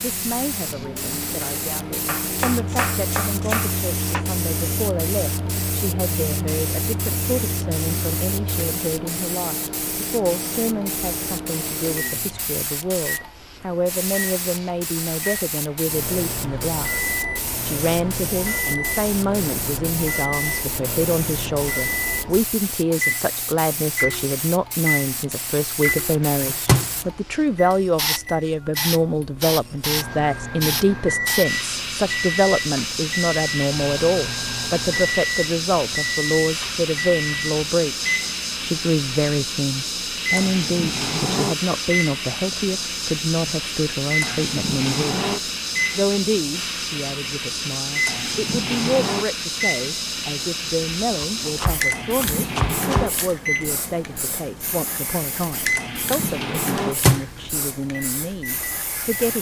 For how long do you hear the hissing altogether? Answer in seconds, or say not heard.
59 s.